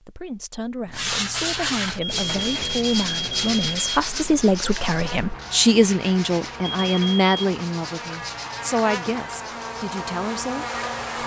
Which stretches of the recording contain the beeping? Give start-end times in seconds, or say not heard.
2.0-4.0, 6.6-7.3.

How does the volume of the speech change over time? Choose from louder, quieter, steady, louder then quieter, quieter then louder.
louder then quieter.